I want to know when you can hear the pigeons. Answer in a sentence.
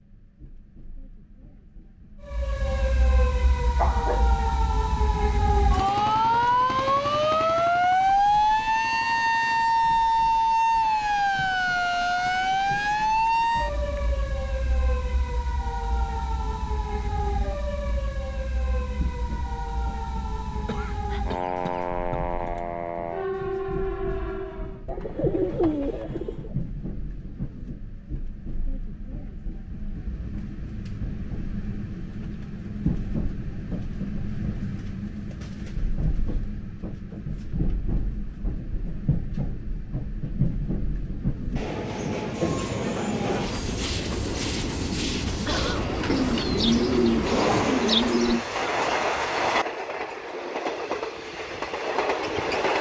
The pigeons can be heard from 12.5 to 14.2 s, from 24.9 to 26.6 s and from 46.1 to 48.4 s.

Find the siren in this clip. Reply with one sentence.
You can hear the siren from 2.2 to 24.9 s.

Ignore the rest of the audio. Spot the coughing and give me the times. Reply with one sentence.
You can hear the coughing from 3.8 to 4.3 s, from 20.6 to 22.2 s and from 45.5 to 45.9 s.